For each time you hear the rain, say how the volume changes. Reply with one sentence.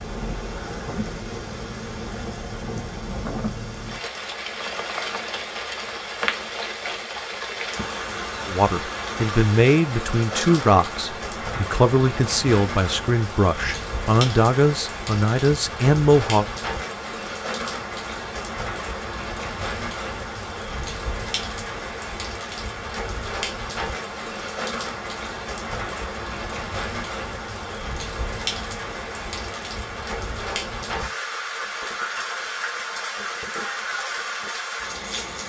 You can hear the rain from 0.0 to 35.4 s, at a steady volume.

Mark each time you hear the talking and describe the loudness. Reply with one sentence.
You can hear the talking from 8.4 to 16.4 s, at a steady volume.